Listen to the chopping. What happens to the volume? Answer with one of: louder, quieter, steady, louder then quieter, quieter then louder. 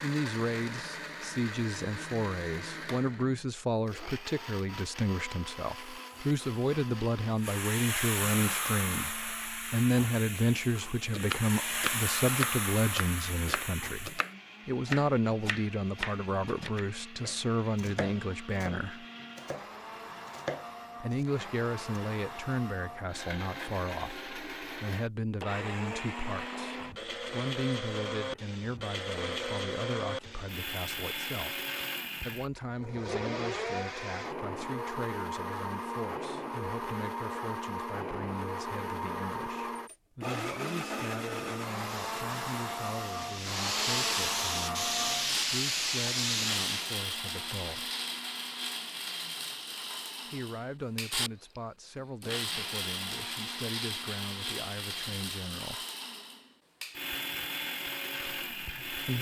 quieter.